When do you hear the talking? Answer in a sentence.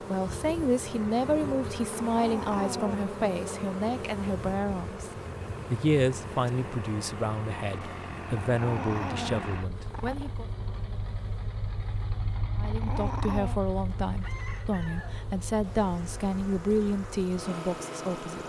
You can hear the talking from 0.1 to 10.4 s and from 12.6 to 18.4 s.